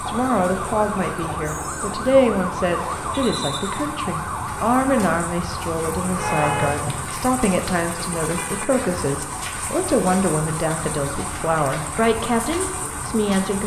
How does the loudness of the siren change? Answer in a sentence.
The volume of the siren stays about the same.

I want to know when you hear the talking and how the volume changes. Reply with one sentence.
You can hear the talking from 0.1 to 13.6 s, at a steady volume.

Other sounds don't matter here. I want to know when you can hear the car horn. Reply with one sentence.
You can hear the car horn from 6.0 to 7.1 s.